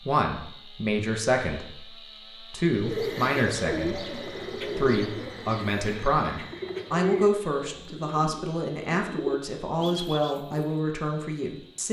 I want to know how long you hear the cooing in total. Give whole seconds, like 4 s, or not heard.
8 s.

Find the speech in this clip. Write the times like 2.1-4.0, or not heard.
0.0-11.8.